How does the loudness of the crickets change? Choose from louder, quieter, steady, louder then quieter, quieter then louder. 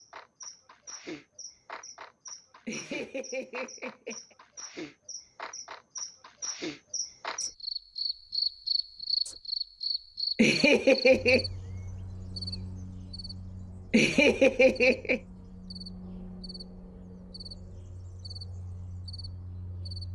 louder then quieter.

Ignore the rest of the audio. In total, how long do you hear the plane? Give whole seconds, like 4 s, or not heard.
not heard.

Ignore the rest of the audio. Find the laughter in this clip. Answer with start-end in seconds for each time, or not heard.
2.6-4.3, 10.3-11.4, 13.9-15.2.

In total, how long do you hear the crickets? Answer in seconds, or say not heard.
20 s.